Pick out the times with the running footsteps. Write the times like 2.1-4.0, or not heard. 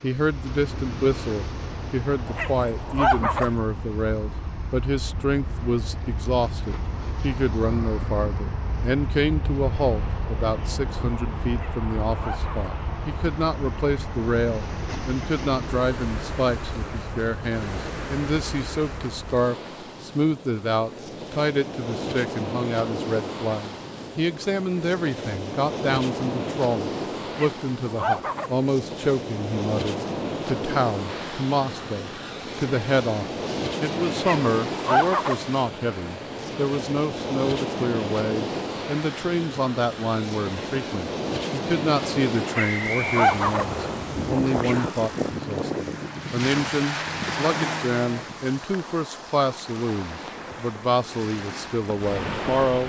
not heard.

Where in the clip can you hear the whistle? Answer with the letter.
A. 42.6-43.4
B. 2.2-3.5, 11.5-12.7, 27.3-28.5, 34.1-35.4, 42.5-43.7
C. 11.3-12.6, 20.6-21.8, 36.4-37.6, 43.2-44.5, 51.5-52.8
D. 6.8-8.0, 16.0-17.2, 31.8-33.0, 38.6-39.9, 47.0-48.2
A.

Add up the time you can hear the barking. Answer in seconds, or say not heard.
6 s.